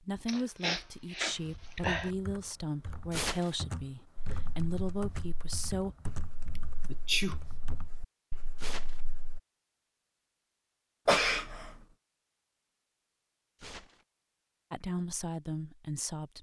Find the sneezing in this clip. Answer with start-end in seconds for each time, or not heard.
0.2-2.1, 6.5-7.3, 11.1-11.8.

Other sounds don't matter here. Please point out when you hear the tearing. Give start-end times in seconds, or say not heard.
3.1-3.5, 8.6-9.1, 13.6-14.1.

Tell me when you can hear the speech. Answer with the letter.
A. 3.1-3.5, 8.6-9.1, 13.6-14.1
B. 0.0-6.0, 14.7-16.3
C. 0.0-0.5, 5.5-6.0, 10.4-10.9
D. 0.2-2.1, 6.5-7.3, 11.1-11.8
B.